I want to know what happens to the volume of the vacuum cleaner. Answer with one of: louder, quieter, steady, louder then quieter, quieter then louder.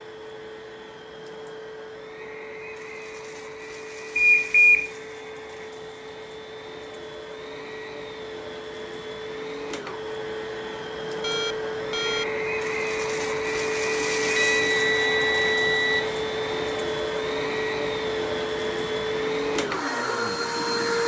louder.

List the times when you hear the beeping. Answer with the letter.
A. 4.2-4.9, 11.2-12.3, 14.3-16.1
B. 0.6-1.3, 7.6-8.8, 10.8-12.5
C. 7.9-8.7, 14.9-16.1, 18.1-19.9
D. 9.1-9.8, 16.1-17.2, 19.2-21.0
A.